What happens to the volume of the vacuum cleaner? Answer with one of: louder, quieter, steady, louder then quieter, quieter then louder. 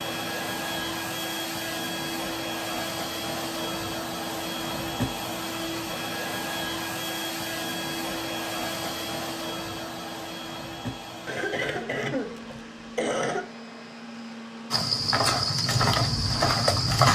quieter.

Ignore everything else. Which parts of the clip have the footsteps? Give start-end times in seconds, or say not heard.
14.7-17.1.